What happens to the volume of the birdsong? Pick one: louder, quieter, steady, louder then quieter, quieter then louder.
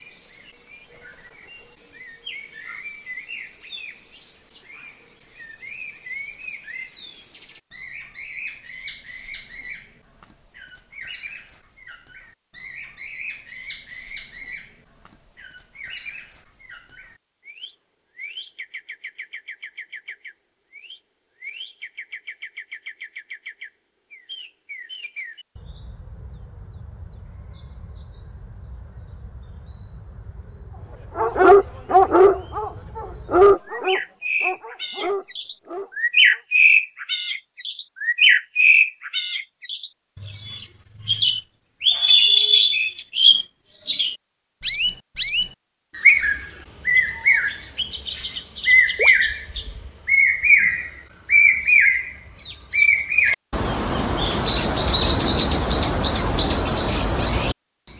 louder.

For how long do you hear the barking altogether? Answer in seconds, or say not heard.
5 s.